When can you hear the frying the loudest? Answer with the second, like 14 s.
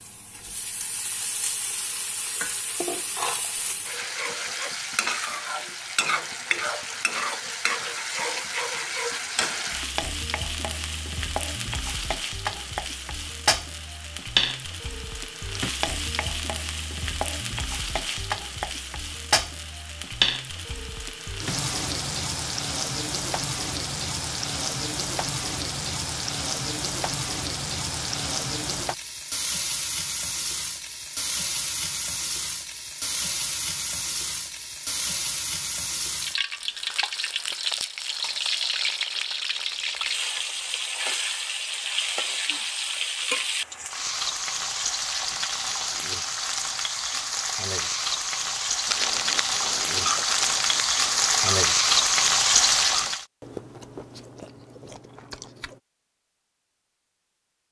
52 s.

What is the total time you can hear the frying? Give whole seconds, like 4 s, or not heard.
53 s.